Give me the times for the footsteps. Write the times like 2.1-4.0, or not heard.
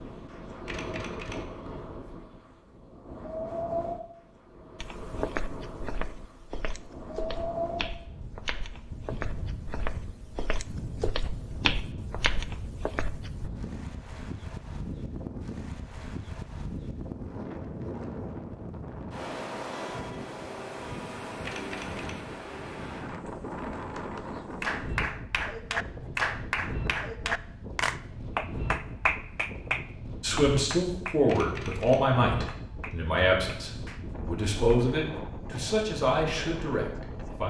4.8-13.5.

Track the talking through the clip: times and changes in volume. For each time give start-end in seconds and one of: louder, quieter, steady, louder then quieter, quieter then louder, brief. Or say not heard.
30.2-37.4 steady.